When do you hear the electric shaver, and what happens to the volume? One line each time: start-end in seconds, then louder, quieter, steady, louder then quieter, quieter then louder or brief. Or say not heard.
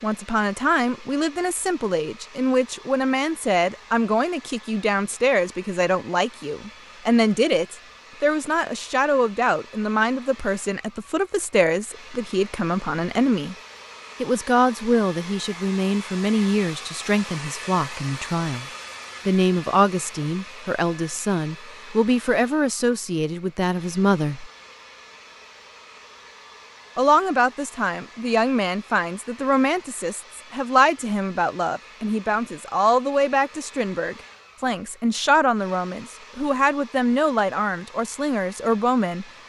not heard.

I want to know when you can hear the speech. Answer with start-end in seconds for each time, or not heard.
0.0-13.6, 14.2-18.6, 19.2-24.5, 26.9-39.2.